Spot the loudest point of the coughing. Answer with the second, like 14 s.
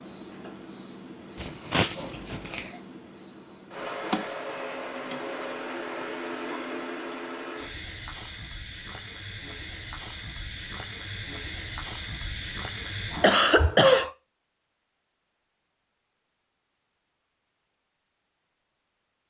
14 s.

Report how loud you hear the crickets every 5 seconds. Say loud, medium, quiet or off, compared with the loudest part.
loud, medium, medium, off.